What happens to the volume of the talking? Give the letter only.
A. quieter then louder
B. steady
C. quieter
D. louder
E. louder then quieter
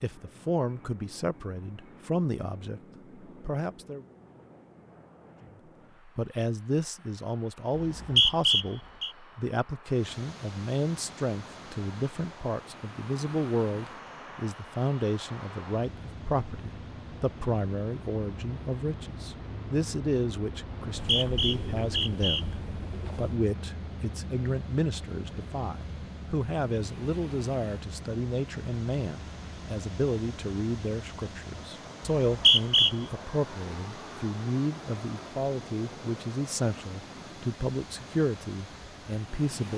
B.